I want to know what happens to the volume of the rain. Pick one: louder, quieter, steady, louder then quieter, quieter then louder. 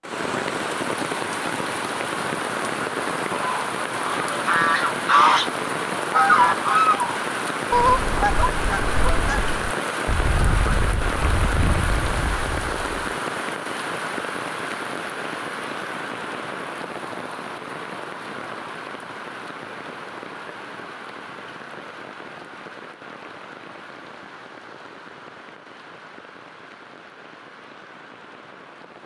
quieter.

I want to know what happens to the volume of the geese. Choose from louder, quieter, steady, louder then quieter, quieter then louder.
quieter.